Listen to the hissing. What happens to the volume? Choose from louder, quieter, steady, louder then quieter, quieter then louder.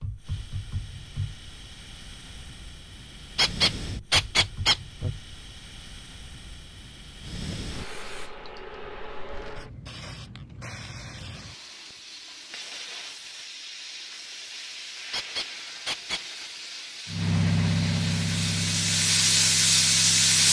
louder.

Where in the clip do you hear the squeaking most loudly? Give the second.
4 s.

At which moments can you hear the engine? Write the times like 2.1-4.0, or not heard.
17.1-20.4.